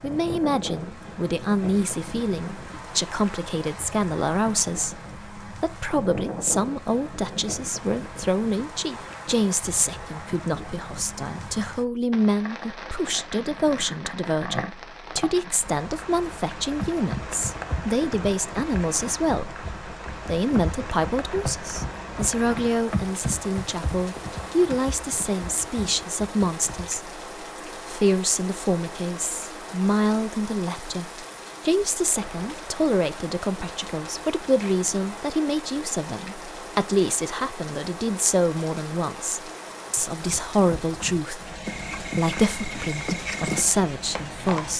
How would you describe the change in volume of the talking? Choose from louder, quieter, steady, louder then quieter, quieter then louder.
steady.